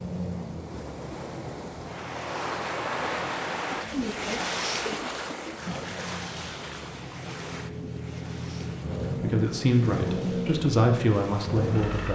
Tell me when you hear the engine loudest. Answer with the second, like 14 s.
10 s.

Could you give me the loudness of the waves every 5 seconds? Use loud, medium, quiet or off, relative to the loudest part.
loud, medium, quiet.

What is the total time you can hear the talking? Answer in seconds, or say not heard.
3 s.